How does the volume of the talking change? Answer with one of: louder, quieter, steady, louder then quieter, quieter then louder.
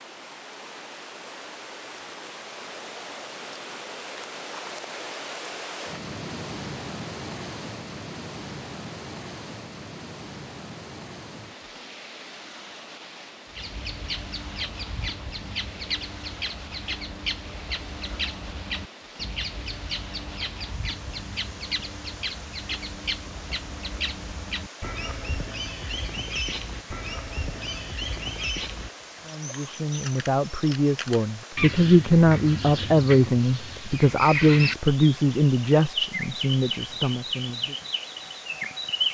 louder then quieter.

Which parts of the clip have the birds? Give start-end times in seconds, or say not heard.
13.6-39.1.